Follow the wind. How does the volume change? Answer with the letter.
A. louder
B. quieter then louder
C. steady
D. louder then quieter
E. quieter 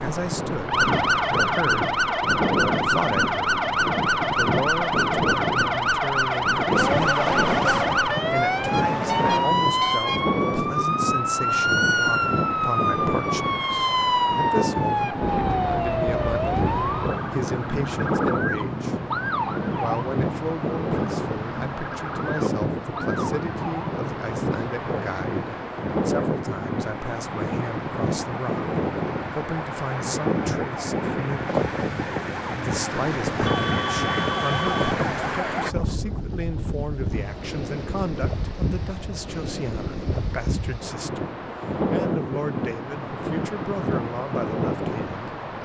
C.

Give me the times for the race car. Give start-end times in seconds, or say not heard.
6.7-9.6.